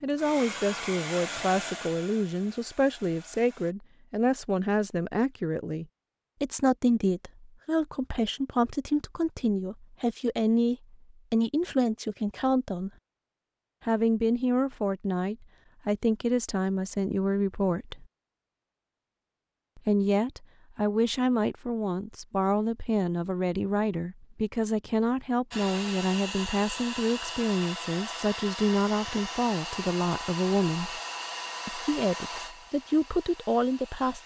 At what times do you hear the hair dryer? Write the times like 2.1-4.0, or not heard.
0.0-3.8, 25.5-34.2.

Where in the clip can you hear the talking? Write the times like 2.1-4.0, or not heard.
0.0-12.9, 13.8-18.1, 19.8-31.0, 31.6-34.2.